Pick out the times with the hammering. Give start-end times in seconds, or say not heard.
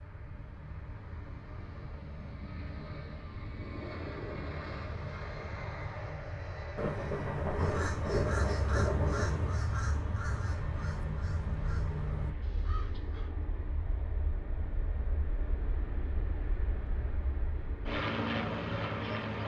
not heard.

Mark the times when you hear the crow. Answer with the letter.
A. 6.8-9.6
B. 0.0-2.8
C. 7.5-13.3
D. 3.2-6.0
C.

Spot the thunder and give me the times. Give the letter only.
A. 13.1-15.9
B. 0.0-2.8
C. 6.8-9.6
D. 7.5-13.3
C.